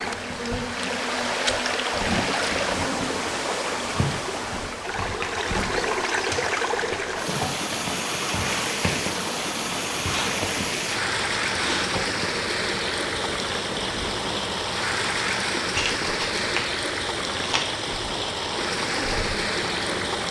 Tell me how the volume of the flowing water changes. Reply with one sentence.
The loudness of the flowing water stays about the same.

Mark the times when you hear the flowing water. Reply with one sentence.
You can hear the flowing water from 0.0 to 20.2 s.